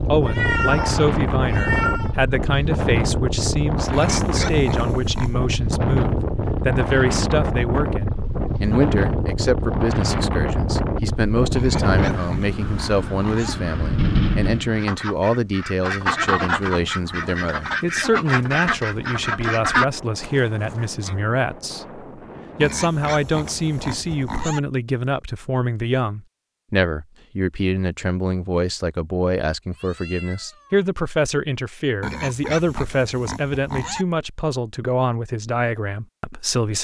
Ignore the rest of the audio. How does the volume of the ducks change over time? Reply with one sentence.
The loudness of the ducks goes up.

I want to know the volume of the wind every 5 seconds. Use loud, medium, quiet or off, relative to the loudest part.
loud, loud, loud, quiet, quiet, off, off, off.